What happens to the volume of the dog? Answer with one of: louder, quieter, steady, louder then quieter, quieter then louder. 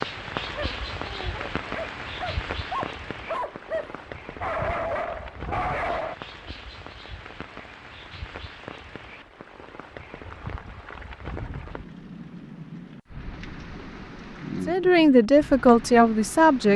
louder.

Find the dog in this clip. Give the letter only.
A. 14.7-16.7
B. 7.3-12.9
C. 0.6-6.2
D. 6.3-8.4
C.